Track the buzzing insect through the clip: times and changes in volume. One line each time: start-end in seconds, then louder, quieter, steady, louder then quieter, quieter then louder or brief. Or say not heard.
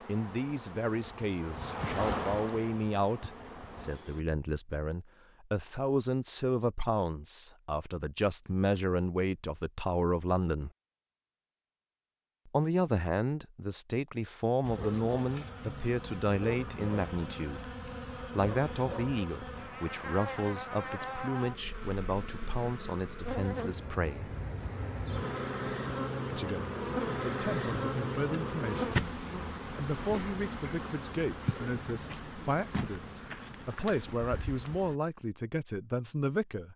0.0-4.2 louder then quieter
14.6-35.0 louder then quieter.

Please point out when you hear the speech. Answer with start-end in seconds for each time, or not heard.
0.1-10.7, 12.4-24.4, 26.3-29.0, 29.8-36.7.